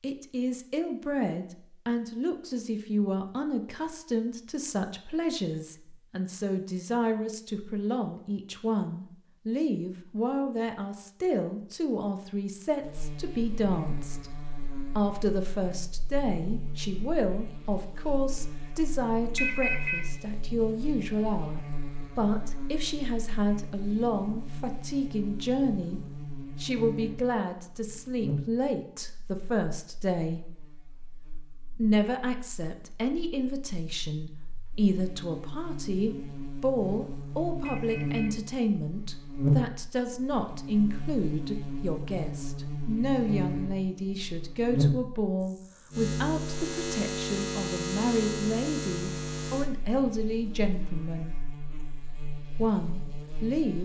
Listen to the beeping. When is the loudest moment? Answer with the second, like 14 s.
20 s.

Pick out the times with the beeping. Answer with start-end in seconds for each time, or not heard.
19.4-20.1, 37.6-38.4.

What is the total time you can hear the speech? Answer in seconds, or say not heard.
50 s.